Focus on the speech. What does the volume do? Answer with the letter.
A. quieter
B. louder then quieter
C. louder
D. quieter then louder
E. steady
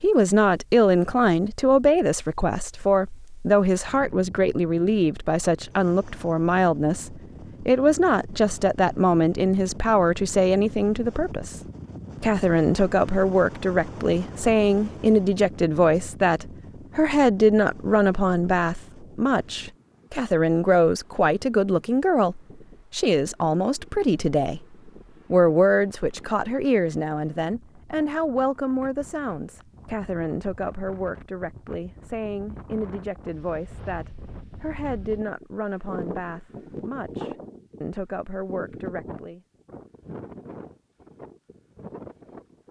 A.